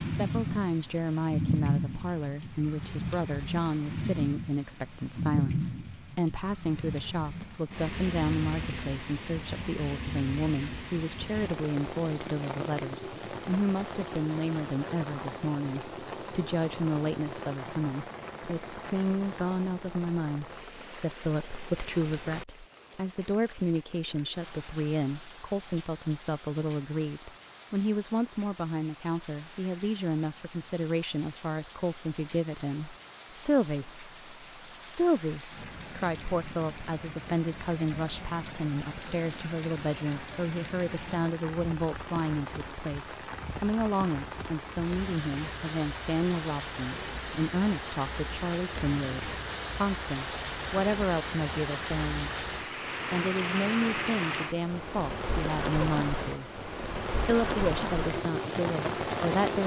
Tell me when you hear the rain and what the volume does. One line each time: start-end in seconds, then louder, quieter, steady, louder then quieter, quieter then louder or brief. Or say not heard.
0.0-59.6 quieter then louder.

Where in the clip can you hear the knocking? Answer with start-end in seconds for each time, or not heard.
not heard.